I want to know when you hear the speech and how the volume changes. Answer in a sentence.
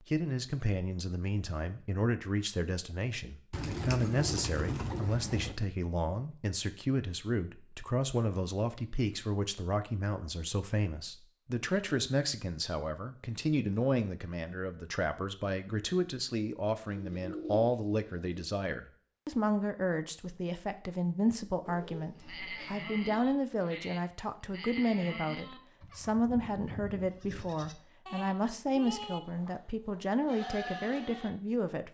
The speech can be heard from 0.1 to 31.9 s, at a steady volume.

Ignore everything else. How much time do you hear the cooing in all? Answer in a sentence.
You can hear the cooing for 5 seconds altogether.